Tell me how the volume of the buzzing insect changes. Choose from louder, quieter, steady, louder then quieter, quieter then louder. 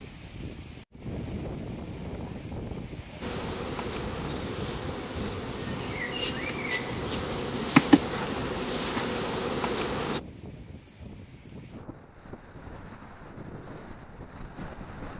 louder then quieter.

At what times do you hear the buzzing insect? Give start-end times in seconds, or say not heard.
3.2-10.2.